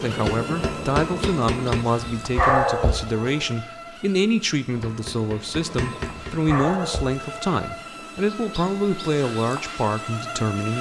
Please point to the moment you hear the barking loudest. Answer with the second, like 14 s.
3 s.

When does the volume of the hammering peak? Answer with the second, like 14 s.
1 s.